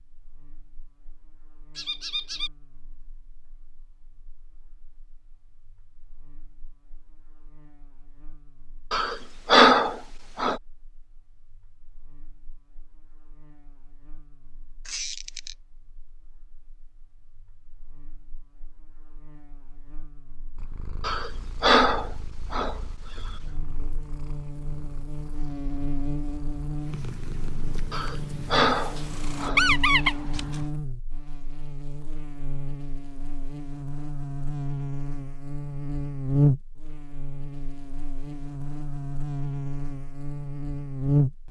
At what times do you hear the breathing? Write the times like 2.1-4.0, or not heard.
8.9-10.6, 21.0-22.8, 27.9-29.6.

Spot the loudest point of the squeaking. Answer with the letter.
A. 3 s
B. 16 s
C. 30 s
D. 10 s
C.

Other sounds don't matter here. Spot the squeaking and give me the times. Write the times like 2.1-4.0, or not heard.
1.8-2.5, 14.8-15.6, 29.6-30.6.